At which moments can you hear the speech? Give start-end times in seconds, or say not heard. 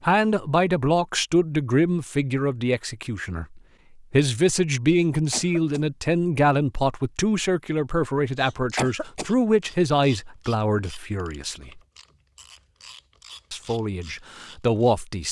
0.0-11.8, 13.5-15.2.